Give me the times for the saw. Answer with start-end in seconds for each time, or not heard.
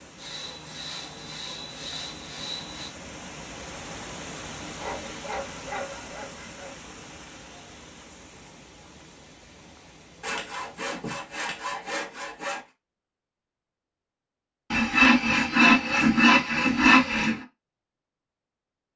0.1-3.0, 4.8-6.8, 10.2-12.6, 14.7-17.4.